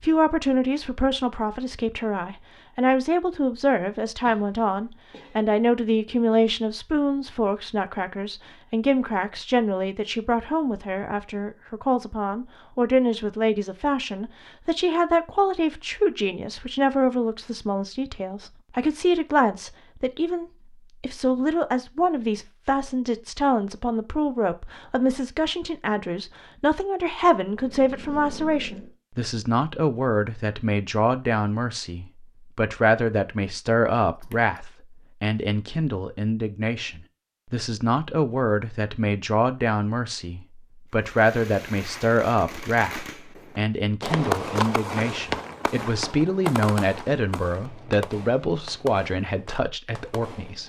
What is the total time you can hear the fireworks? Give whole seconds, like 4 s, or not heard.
10 s.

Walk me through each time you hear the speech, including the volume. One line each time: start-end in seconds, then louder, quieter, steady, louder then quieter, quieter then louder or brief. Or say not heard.
0.0-50.6 steady.